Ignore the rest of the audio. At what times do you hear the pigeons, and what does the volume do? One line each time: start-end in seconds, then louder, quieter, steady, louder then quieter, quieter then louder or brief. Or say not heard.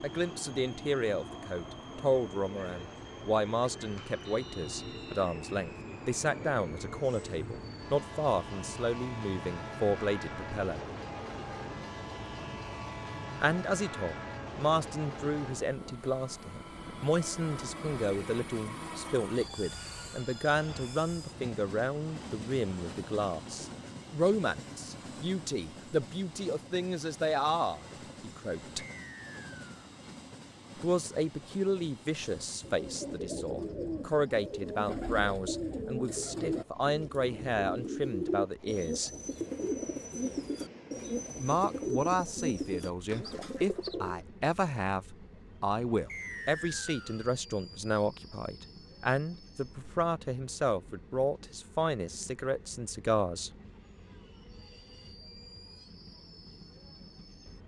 32.6-44.2 steady.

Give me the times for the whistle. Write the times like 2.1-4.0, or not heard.
4.2-5.2, 28.8-29.9, 46.0-47.2.